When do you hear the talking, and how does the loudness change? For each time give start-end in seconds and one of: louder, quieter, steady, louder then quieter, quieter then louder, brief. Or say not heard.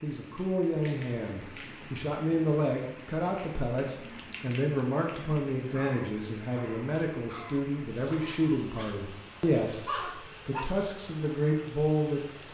0.0-12.2 steady.